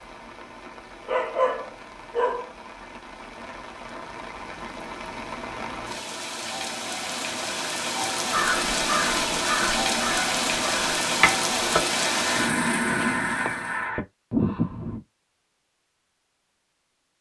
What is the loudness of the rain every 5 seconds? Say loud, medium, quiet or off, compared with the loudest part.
quiet, loud, loud, off.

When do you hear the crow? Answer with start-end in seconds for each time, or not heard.
8.3-15.0.